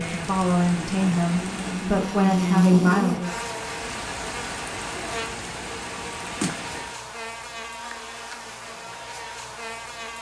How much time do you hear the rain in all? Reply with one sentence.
You can hear the rain for 7 seconds altogether.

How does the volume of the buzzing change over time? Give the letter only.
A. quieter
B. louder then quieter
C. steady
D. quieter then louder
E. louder
A.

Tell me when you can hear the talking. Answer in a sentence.
You can hear the talking from 0.1 to 3.5 s.